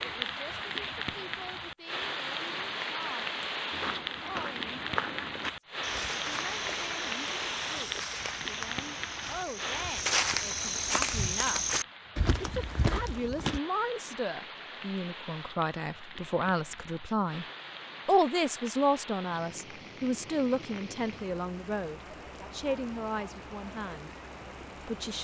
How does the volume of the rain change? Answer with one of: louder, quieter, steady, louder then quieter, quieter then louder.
quieter.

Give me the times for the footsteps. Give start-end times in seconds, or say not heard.
3.7-13.6.